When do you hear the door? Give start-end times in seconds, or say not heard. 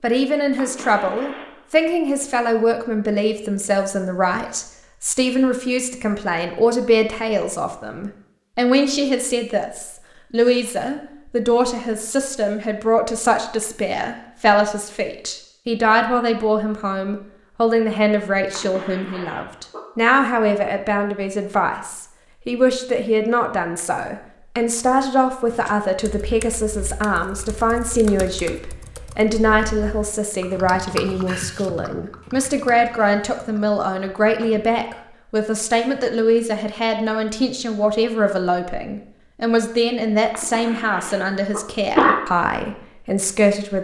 not heard.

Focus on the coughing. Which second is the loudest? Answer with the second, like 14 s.
42 s.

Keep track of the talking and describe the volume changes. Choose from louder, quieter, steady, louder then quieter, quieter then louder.
steady.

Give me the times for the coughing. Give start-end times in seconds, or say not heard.
0.6-1.6, 18.5-19.8, 40.3-42.2.